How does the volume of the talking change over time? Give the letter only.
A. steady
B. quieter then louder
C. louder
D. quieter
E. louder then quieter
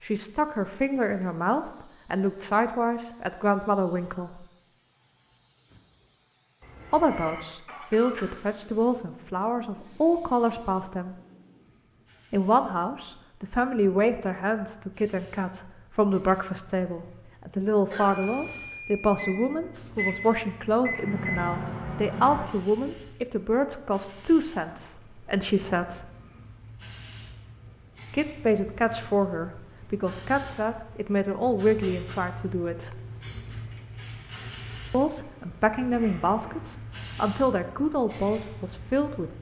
A.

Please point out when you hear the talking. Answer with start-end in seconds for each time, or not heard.
0.0-4.5, 6.9-11.2, 12.3-26.1, 28.1-33.0, 34.9-39.3.